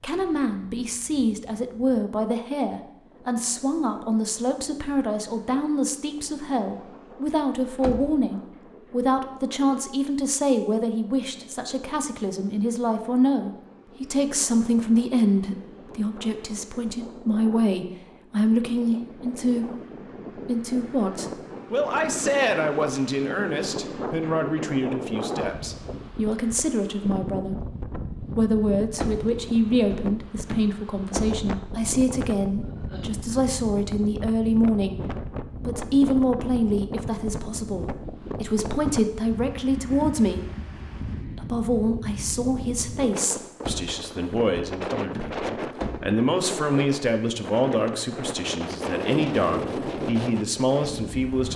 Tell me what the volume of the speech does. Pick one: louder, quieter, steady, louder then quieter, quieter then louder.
steady.